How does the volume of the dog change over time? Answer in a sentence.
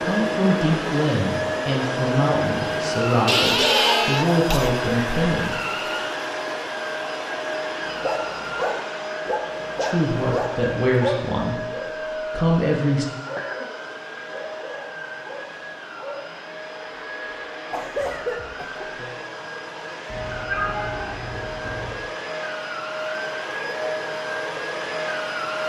The volume of the dog goes down.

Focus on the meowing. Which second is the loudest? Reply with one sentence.
The loudest moment of the meowing is at 21 seconds.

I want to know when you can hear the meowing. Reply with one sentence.
You can hear the meowing from 20.1 to 21.9 s.